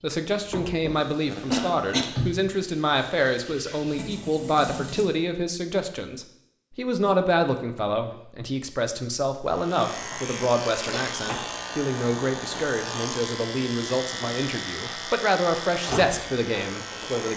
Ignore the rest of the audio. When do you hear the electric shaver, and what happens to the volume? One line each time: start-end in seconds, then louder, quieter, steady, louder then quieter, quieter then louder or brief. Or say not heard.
9.4-17.3 steady.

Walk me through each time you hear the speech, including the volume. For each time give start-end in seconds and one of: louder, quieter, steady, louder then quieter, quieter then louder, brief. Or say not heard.
0.0-17.3 steady.